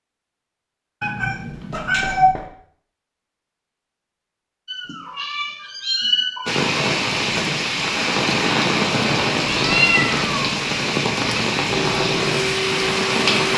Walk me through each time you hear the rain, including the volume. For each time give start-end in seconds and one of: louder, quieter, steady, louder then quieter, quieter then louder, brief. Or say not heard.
6.5-13.5 steady.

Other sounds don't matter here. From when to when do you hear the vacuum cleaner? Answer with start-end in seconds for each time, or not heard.
11.8-13.5.